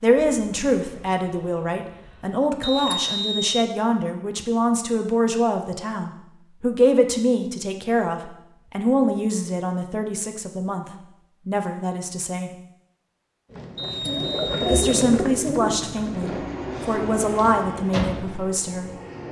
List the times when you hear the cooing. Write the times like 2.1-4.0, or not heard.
13.5-18.4.